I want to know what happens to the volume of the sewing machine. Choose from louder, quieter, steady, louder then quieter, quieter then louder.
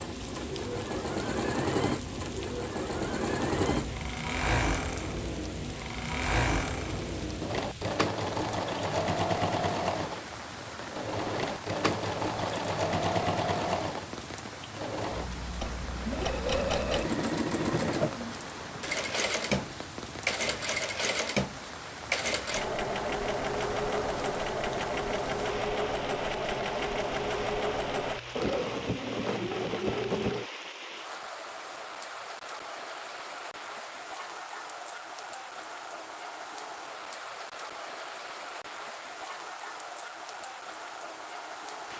steady.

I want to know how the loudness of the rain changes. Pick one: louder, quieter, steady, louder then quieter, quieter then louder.
steady.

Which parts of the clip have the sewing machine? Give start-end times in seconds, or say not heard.
0.0-30.5.